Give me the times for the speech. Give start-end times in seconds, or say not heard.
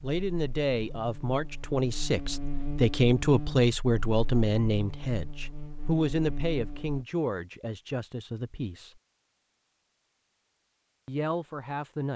0.0-9.0, 11.1-12.1.